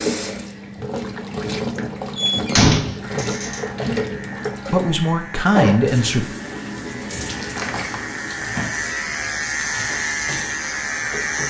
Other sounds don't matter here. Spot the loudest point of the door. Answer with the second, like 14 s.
3 s.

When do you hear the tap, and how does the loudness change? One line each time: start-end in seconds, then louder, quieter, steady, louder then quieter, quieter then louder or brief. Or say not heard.
0.0-11.4 quieter.